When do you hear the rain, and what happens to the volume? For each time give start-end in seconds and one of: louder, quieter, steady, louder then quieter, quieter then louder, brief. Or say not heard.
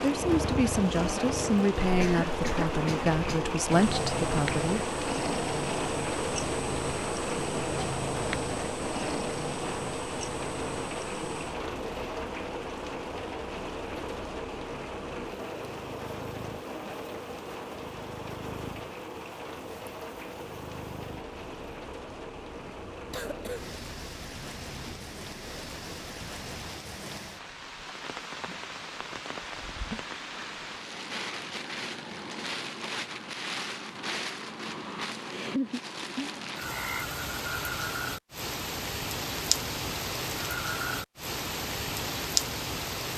0.0-43.1 quieter then louder.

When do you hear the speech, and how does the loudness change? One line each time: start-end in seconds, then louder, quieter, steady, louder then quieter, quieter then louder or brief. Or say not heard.
0.0-4.8 steady.